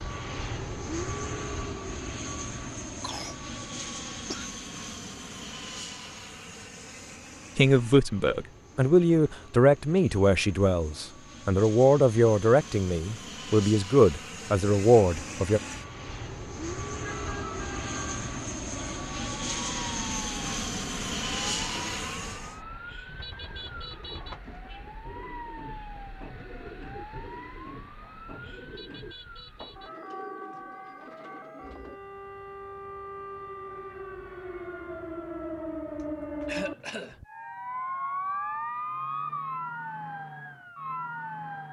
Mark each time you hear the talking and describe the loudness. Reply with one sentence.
You can hear the talking from 7.5 to 15.6 s, at a steady volume.